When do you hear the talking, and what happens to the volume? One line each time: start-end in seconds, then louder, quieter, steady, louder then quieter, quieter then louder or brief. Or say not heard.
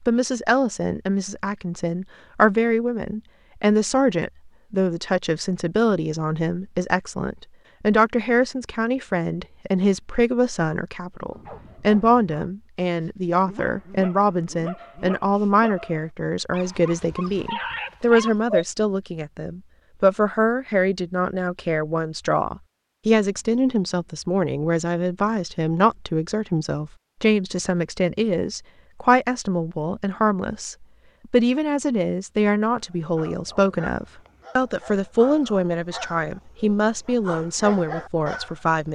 0.1-38.8 steady.